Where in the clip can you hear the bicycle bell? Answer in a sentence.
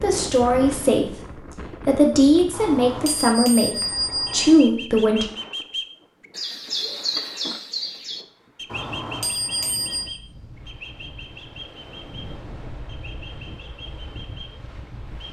The bicycle bell can be heard from 2.5 to 4.5 s and from 8.7 to 10.1 s.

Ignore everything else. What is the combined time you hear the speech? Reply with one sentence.
You can hear the speech for 5 seconds altogether.